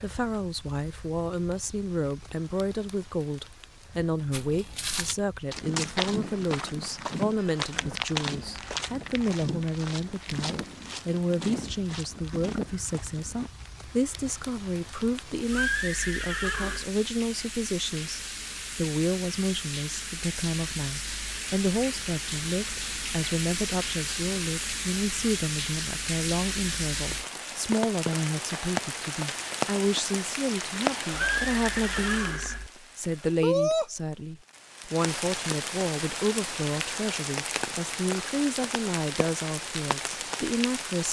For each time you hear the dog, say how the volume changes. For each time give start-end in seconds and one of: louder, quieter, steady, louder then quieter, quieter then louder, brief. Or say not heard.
not heard.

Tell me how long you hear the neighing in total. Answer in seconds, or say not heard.
3 s.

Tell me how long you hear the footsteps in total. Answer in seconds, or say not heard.
9 s.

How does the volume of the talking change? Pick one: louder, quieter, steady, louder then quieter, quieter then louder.
steady.